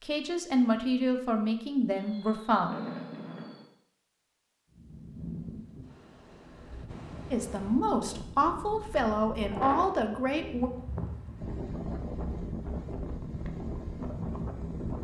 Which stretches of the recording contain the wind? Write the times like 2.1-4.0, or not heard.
4.7-14.9.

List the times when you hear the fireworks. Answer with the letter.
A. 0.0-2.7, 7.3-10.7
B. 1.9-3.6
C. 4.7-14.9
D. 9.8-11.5
B.